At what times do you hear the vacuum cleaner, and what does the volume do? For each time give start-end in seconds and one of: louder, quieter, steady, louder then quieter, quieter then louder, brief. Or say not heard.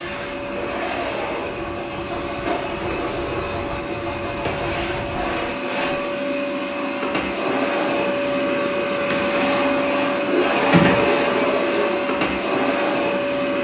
0.0-13.5 louder.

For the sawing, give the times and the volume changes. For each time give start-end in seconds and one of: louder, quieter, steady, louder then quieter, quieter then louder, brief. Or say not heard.
0.0-6.0 louder.